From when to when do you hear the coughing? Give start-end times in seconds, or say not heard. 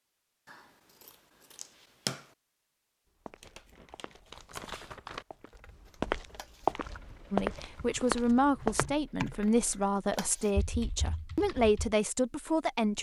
not heard.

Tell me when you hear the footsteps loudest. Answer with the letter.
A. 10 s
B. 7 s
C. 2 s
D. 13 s
B.